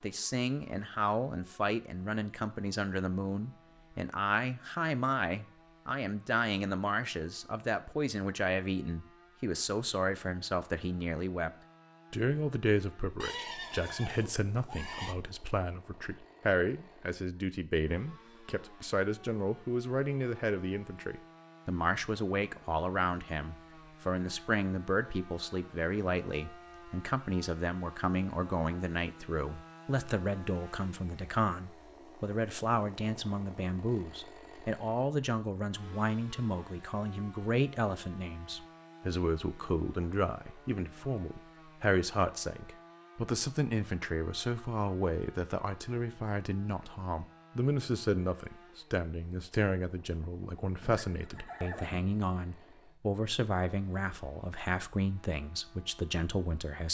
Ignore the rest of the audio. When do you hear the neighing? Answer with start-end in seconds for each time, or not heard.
13.2-15.2, 50.8-52.0.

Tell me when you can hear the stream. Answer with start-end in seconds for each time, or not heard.
not heard.